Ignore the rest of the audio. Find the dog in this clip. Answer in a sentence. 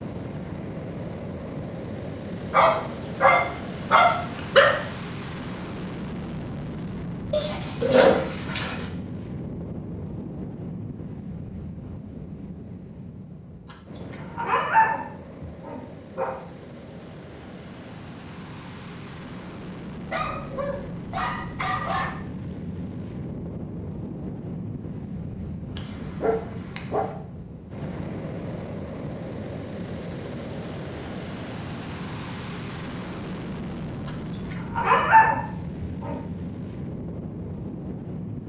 The dog can be heard from 2.5 to 4.8 s, from 7.3 to 8.9 s, from 14.3 to 16.4 s, from 20.1 to 22.1 s, from 25.8 to 27.1 s and from 34.5 to 36.2 s.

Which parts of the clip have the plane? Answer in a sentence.
You can hear the plane from 0.0 to 38.4 s.